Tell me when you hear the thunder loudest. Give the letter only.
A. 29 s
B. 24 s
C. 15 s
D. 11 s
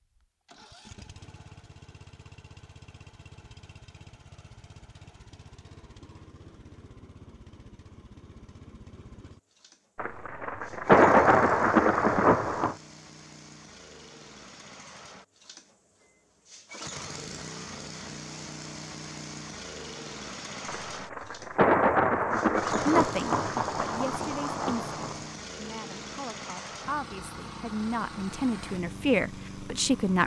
D.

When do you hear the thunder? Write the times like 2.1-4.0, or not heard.
9.9-12.8, 20.6-25.2.